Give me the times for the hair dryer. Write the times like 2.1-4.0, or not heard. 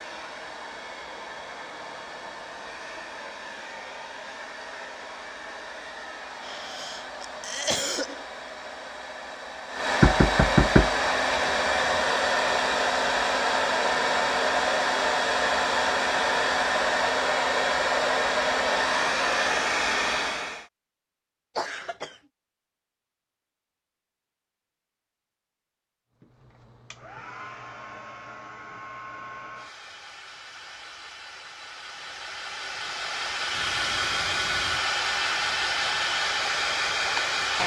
0.0-20.6, 26.2-37.6.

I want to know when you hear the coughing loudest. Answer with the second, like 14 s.
8 s.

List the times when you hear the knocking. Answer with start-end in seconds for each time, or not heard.
10.0-11.8.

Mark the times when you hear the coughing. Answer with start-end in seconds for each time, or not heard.
6.4-8.2, 21.6-22.1.